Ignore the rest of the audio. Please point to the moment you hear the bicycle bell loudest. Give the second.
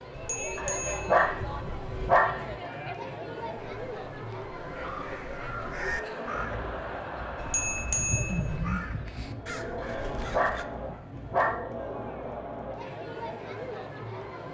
8 s.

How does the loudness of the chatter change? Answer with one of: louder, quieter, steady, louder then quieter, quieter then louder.
steady.